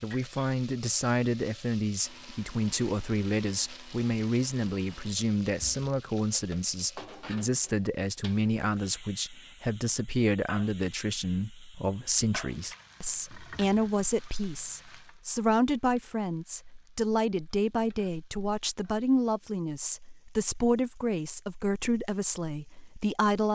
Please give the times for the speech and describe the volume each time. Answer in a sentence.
You can hear the speech from 0.0 to 23.5 s, at a steady volume.